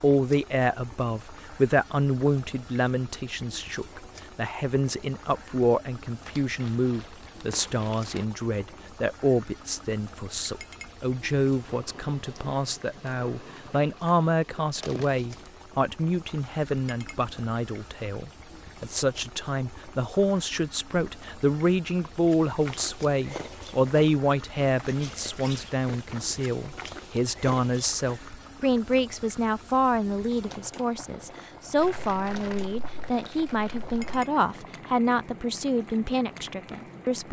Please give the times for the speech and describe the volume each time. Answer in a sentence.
The speech can be heard from 0.0 to 37.2 s, at a steady volume.